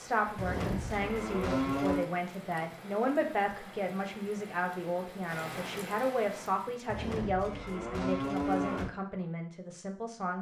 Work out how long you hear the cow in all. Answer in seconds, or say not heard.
4 s.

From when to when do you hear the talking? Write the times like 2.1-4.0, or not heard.
0.0-10.3.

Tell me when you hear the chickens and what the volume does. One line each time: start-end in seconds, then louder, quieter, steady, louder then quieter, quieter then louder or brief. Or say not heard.
not heard.